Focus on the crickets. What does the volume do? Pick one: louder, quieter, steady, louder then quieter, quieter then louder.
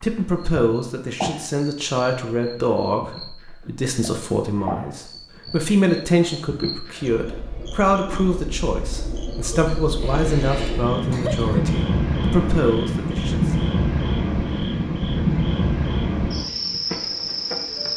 louder.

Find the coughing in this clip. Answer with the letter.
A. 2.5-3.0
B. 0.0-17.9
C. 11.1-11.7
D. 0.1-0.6
C.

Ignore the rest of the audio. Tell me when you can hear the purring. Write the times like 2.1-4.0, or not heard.
not heard.